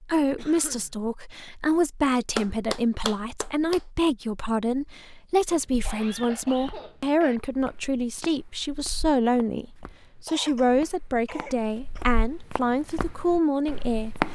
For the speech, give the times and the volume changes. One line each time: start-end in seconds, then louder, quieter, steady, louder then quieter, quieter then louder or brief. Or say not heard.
0.0-14.2 steady.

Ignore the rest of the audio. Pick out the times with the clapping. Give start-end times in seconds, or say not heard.
2.4-3.9.